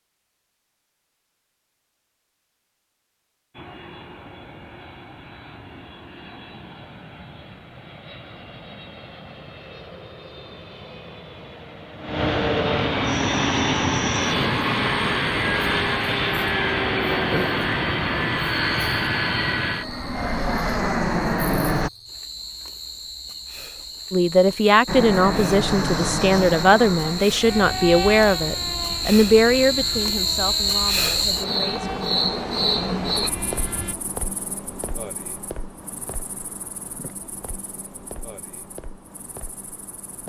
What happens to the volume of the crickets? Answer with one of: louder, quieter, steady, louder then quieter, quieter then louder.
louder then quieter.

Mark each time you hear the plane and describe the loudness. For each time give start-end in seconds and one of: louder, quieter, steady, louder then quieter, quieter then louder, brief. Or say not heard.
3.5-21.9 louder
24.9-34.0 quieter.